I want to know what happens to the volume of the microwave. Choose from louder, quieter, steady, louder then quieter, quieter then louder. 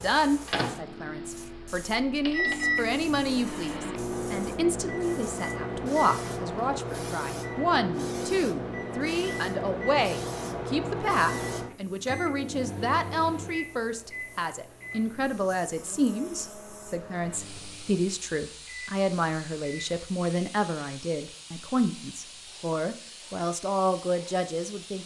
quieter.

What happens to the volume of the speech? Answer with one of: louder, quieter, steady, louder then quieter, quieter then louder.
steady.